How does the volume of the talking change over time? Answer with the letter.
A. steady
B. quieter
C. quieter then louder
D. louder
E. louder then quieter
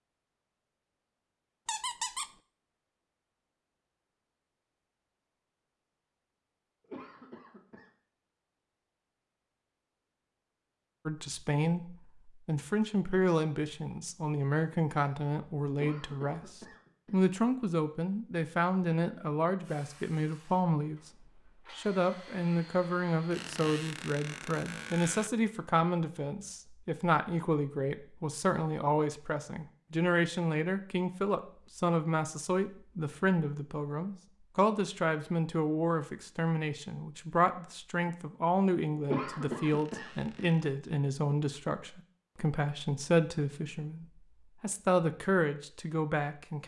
A.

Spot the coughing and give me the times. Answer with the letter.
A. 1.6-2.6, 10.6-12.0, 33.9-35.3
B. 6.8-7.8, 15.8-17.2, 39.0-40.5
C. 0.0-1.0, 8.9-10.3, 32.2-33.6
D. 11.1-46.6
B.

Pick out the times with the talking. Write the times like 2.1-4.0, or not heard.
11.1-46.6.